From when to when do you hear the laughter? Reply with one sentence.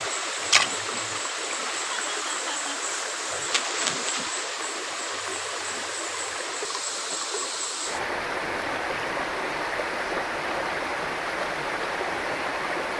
The laughter can be heard from 1.9 to 2.8 s.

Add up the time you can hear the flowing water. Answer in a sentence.
You can hear the flowing water for 13 seconds altogether.